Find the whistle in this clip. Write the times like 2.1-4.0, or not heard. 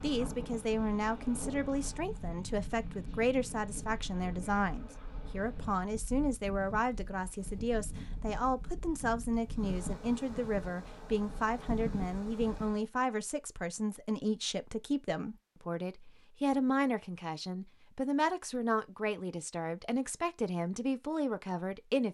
not heard.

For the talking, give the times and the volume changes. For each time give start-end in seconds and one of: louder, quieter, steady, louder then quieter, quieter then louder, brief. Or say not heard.
0.0-22.0 steady.